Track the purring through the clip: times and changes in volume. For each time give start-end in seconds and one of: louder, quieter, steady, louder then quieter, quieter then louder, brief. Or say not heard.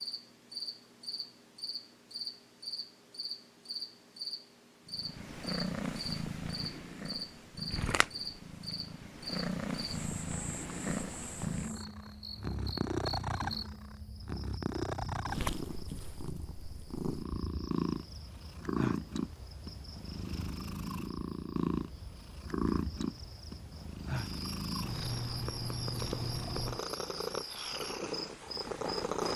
4.8-29.3 steady.